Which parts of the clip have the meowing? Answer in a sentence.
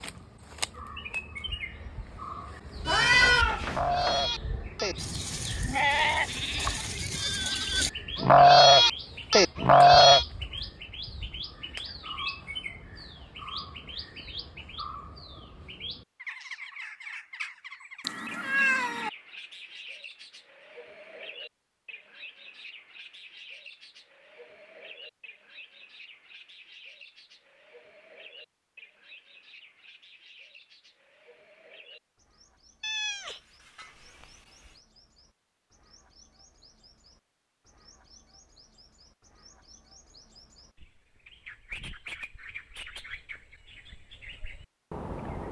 You can hear the meowing from 2.9 to 4.2 s, from 18.0 to 19.1 s and from 32.8 to 34.8 s.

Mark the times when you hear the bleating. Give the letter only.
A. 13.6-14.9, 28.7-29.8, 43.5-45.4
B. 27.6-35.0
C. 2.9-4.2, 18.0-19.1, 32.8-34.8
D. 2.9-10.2
D.